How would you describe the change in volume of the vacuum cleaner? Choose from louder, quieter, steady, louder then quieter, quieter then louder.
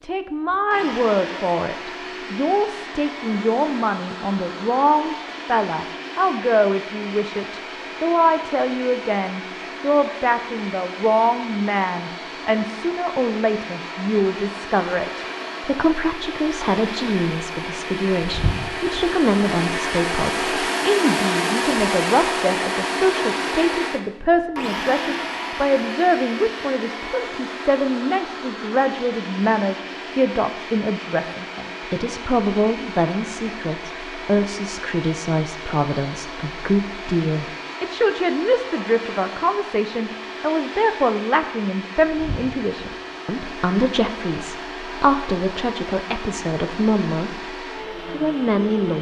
louder then quieter.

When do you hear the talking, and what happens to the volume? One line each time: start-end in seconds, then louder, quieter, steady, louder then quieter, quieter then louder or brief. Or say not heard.
0.0-48.9 steady.